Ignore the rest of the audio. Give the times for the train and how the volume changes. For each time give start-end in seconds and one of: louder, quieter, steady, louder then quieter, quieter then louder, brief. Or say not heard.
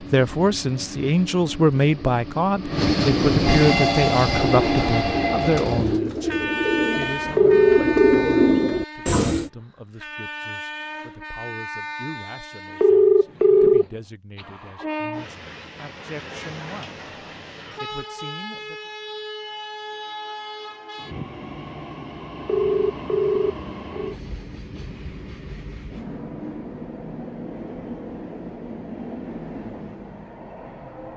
0.0-31.1 quieter.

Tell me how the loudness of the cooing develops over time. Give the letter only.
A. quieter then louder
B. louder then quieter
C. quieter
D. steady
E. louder
E.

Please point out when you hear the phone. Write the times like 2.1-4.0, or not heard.
7.3-8.2, 12.8-13.8, 22.4-24.1.